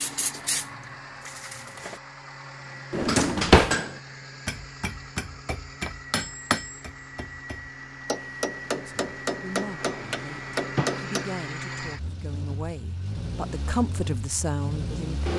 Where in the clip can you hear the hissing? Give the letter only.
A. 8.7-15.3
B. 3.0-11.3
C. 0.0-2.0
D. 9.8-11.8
C.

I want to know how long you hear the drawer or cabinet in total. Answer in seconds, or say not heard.
2 s.